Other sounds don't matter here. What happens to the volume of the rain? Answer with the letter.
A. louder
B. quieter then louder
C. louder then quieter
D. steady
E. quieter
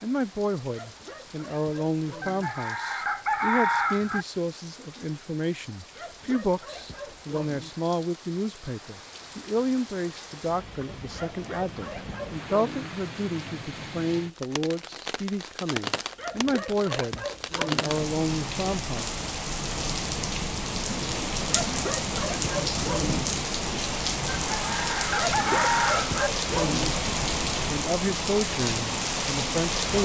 A.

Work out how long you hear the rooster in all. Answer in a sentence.
The rooster can be heard for 4 seconds in total.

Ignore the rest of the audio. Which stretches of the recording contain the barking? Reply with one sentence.
The barking can be heard from 0.7 to 2.5 s, from 6.0 to 7.7 s, from 11.1 to 12.9 s, from 16.1 to 17.9 s, from 21.4 to 23.2 s and from 25.1 to 26.9 s.